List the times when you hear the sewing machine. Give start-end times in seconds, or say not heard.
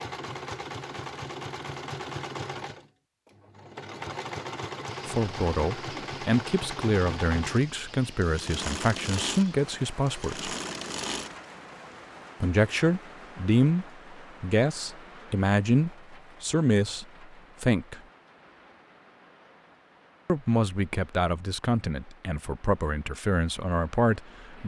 0.0-11.5.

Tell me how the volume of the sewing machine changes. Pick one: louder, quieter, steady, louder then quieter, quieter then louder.
steady.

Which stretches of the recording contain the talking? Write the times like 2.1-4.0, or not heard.
5.0-10.5, 12.4-18.0, 20.2-24.6.